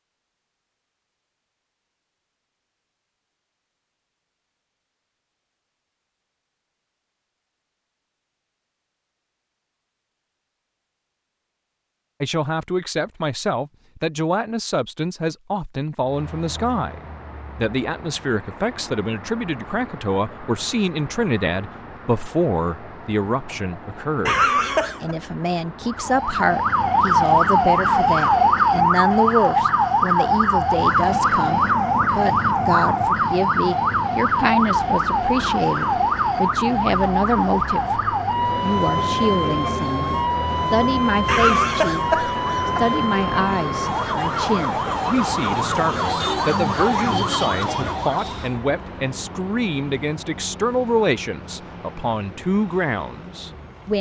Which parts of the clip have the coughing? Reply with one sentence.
The coughing can be heard from 24.2 to 25.1 s and from 41.2 to 43.0 s.